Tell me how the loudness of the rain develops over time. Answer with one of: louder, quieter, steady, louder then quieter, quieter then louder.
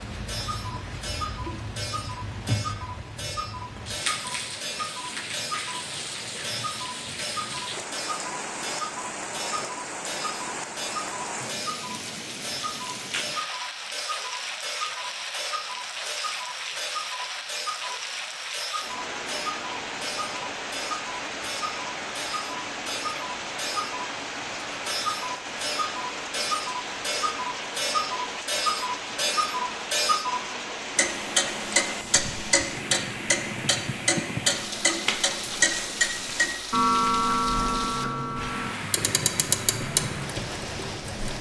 steady.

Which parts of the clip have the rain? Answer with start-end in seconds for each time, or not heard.
0.0-41.3.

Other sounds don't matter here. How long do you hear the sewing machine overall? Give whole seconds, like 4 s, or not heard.
not heard.